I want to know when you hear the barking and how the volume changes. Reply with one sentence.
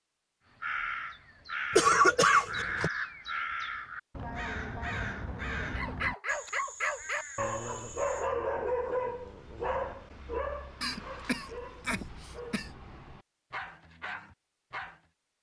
You can hear the barking from 5.8 to 15.0 s, getting quieter.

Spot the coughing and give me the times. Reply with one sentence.
The coughing can be heard from 1.7 to 2.9 s and from 10.8 to 12.7 s.